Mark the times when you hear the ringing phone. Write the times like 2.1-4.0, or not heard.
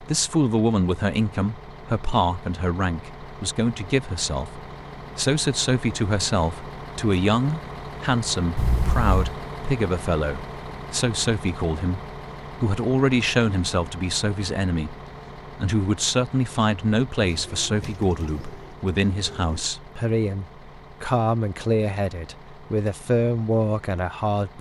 8.6-9.2.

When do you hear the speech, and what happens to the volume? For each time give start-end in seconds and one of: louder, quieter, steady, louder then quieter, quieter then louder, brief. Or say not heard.
0.0-24.5 steady.